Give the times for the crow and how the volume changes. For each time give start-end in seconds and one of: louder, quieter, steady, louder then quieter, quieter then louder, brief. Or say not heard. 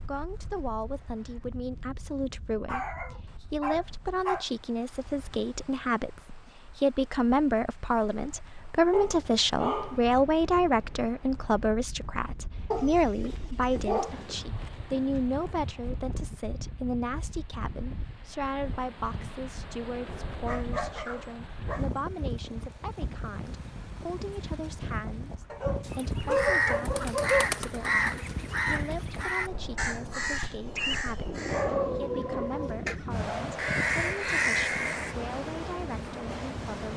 25.9-35.1 quieter then louder.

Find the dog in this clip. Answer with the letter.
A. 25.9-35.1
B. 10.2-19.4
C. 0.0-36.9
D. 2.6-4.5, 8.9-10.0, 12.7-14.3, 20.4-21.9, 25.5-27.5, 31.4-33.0
D.